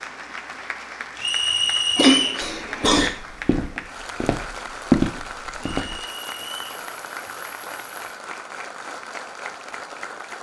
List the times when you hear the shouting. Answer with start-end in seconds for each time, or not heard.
not heard.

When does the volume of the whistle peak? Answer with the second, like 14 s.
2 s.